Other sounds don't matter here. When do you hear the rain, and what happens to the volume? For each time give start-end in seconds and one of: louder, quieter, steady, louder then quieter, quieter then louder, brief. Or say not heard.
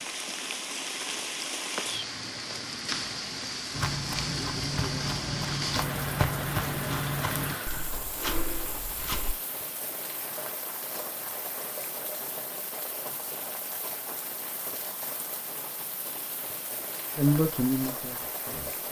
0.0-18.8 quieter.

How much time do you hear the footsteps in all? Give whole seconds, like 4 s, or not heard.
6 s.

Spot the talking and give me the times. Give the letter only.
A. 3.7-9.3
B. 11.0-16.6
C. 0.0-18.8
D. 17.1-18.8
D.